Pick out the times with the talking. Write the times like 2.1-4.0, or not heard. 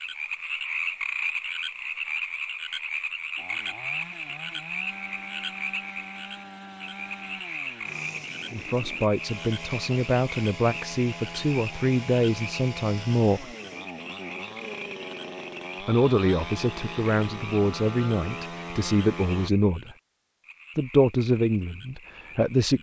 8.5-13.5, 15.8-19.9, 20.8-22.7.